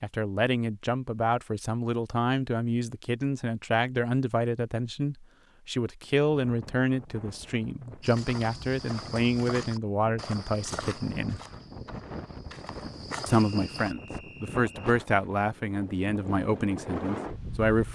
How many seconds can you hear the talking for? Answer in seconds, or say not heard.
16 s.